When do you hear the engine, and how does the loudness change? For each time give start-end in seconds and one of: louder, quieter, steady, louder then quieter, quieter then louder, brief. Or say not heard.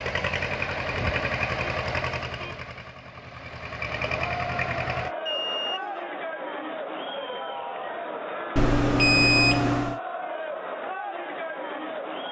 0.0-5.1 quieter then louder.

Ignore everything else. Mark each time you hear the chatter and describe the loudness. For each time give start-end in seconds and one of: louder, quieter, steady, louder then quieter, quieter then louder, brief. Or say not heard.
4.0-12.2 steady.